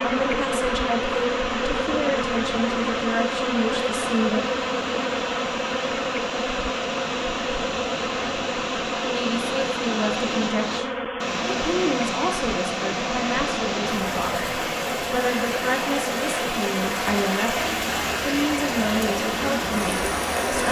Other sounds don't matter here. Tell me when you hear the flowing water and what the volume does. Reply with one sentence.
The flowing water can be heard from 0.0 to 20.6 s, getting louder.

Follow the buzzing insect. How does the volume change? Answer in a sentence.
The loudness of the buzzing insect goes down.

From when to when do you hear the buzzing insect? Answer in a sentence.
You can hear the buzzing insect from 0.0 to 20.6 s.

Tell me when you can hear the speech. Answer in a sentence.
The speech can be heard from 0.0 to 4.4 s and from 9.0 to 20.6 s.